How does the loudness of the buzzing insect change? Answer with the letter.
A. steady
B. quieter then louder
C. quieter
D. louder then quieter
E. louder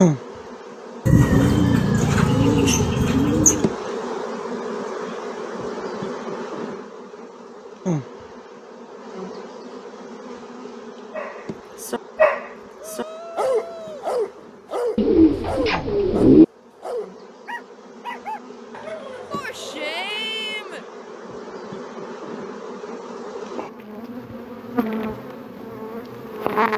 B.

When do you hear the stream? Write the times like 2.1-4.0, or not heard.
not heard.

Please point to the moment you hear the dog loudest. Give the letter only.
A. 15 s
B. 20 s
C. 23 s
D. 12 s
D.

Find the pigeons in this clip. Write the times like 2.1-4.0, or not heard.
1.1-3.6, 14.9-16.4.